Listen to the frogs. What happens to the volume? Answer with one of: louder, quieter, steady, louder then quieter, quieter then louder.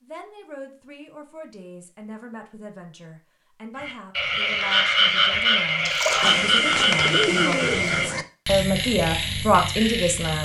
quieter.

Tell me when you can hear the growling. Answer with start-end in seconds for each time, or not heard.
not heard.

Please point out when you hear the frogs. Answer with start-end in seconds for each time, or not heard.
3.8-10.4.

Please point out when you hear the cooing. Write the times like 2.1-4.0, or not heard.
6.2-8.2.